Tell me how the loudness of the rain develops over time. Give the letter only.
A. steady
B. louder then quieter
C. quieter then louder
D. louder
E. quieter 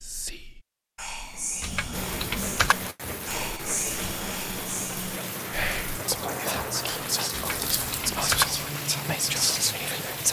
A.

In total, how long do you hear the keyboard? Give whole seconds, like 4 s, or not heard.
2 s.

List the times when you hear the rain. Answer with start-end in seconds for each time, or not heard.
1.9-10.2.